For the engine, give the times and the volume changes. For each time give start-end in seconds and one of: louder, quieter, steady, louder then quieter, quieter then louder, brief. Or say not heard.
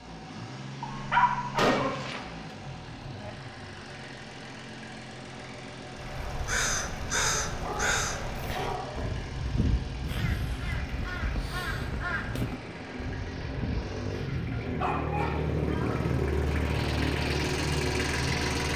0.0-18.7 louder.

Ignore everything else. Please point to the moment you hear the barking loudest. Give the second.
1 s.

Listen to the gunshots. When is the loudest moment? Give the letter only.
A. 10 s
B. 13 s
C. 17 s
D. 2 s
D.